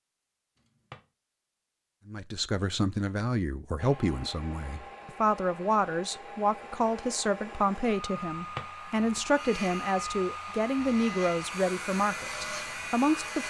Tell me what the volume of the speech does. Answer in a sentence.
The volume of the speech stays about the same.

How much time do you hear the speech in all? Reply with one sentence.
You can hear the speech for 11 seconds altogether.